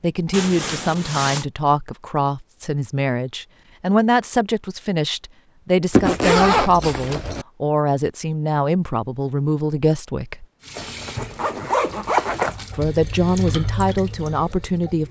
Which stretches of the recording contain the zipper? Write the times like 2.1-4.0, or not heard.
0.3-1.4, 5.9-7.5, 10.8-12.6.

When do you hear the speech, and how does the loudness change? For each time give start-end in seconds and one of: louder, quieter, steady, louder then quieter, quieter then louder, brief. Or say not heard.
0.0-10.4 steady
12.8-15.0 brief.